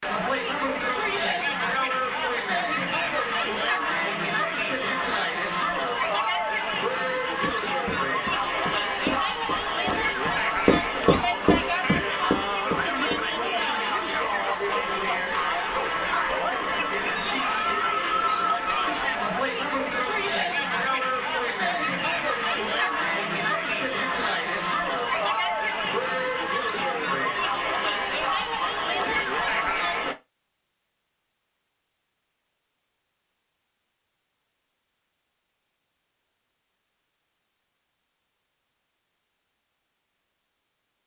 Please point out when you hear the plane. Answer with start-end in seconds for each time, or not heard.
not heard.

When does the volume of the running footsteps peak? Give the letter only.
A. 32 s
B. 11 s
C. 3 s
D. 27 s
B.